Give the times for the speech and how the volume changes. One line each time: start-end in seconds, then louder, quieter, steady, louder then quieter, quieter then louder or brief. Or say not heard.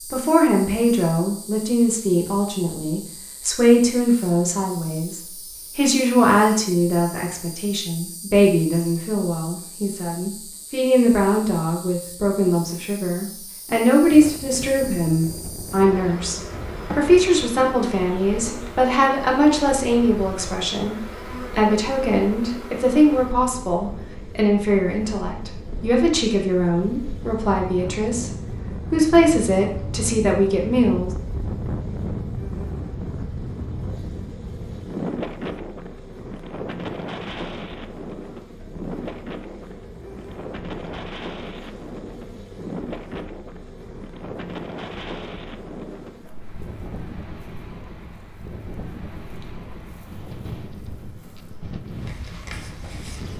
0.1-31.1 steady.